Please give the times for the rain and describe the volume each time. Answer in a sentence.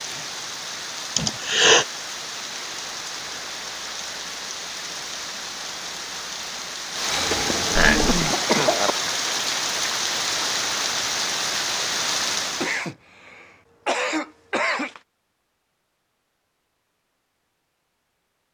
The rain can be heard from 0.0 to 12.9 s, getting louder.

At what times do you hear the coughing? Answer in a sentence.
The coughing can be heard from 1.1 to 1.9 s, from 7.1 to 8.9 s and from 12.6 to 15.0 s.